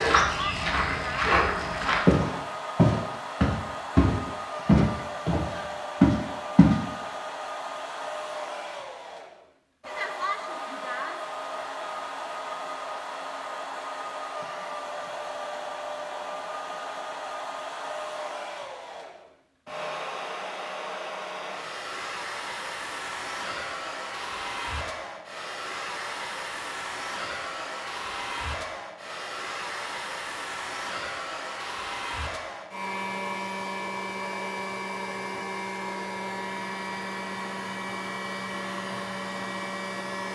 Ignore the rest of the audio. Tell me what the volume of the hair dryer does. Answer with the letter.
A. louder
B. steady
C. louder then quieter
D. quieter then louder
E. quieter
B.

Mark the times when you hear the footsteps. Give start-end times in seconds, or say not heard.
0.0-6.8.